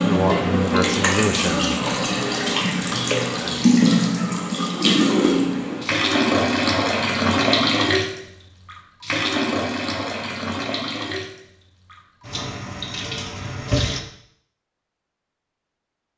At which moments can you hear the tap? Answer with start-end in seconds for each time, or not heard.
0.0-14.0.